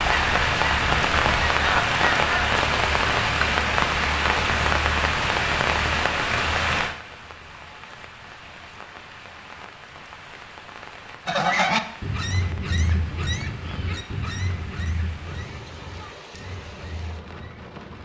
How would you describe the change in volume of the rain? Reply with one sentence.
The loudness of the rain goes down.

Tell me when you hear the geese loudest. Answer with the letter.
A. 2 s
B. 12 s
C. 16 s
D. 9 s
B.